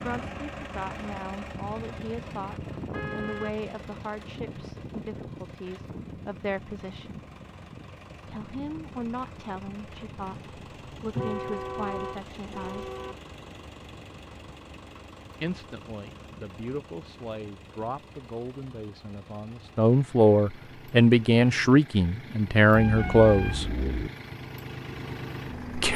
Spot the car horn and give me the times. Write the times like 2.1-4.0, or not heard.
2.9-3.5, 11.2-13.2, 22.7-24.1.